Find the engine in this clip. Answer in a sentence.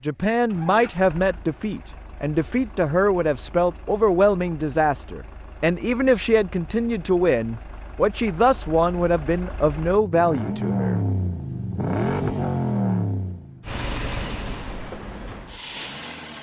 The engine can be heard from 0.0 to 16.3 s.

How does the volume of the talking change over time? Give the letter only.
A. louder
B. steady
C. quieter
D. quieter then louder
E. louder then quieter
B.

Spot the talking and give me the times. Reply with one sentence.
The talking can be heard from 0.0 to 11.0 s.